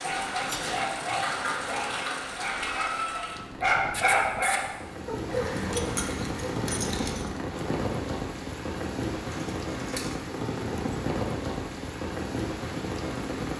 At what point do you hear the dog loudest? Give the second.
4 s.